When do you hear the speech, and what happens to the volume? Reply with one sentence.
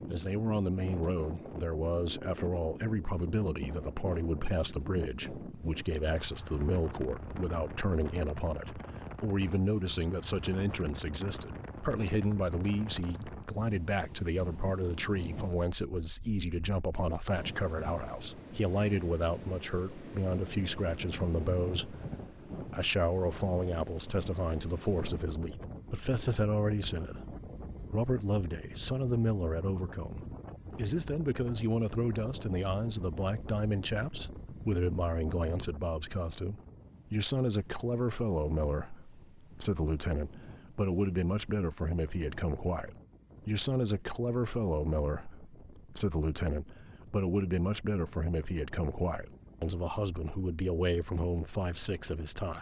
You can hear the speech from 0.1 to 52.5 s, at a steady volume.